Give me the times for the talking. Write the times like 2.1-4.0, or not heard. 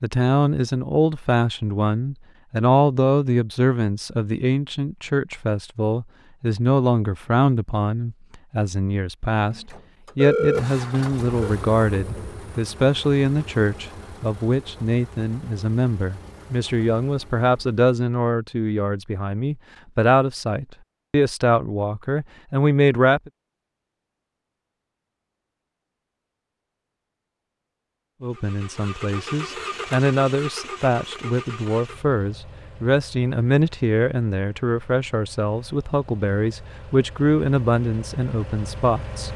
0.0-23.3, 28.2-39.3.